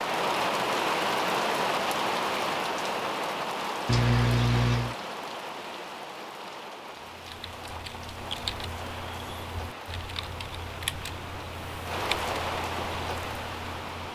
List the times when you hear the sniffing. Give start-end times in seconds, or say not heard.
3.9-5.0.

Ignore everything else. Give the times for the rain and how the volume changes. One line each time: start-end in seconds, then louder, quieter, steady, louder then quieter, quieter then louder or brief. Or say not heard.
0.0-14.1 quieter then louder.